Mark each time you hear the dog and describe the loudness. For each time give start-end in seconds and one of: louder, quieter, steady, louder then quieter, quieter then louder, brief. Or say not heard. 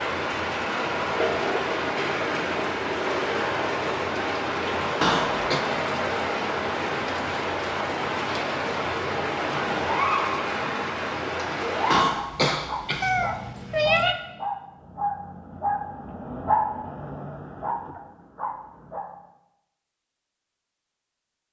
12.2-19.1 louder then quieter.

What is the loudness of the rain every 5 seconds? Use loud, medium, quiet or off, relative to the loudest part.
loud, loud, loud, off, off.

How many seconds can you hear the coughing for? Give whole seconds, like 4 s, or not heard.
2 s.